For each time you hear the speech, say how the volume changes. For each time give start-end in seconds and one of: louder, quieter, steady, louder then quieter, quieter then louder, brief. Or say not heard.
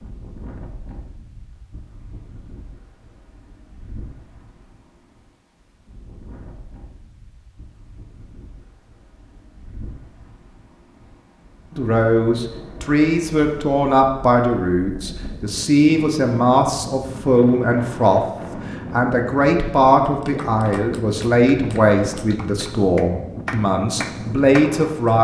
11.8-25.1 steady.